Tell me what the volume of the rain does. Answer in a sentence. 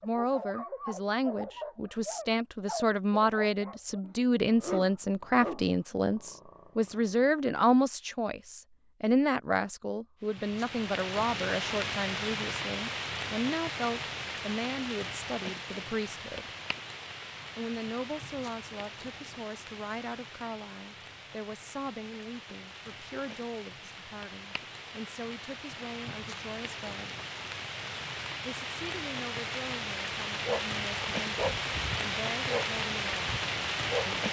The volume of the rain goes down, then up.